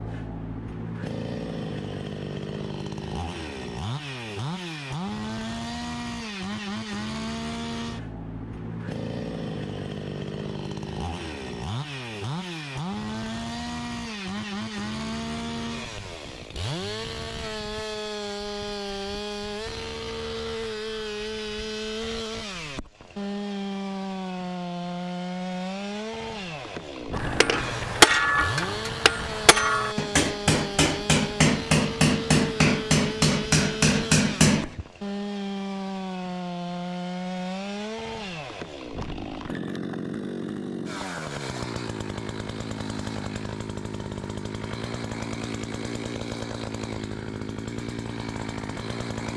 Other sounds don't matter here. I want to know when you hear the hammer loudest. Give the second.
28 s.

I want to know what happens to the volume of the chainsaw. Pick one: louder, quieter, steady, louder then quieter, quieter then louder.
steady.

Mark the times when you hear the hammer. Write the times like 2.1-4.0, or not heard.
27.1-34.9.